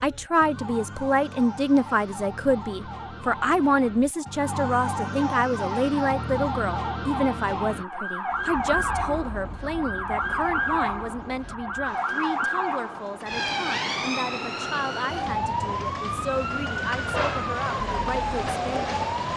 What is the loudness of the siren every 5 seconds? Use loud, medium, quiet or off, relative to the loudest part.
medium, loud, loud, loud.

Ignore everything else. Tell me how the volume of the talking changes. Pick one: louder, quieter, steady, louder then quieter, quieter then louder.
quieter.